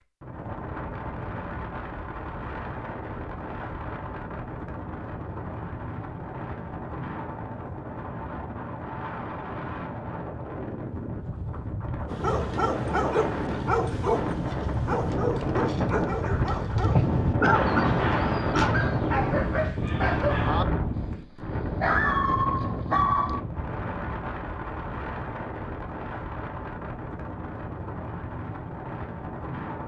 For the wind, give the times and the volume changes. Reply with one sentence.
The wind can be heard from 0.0 to 29.8 s, getting louder then quieter.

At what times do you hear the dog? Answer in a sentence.
The dog can be heard from 12.1 to 23.4 s.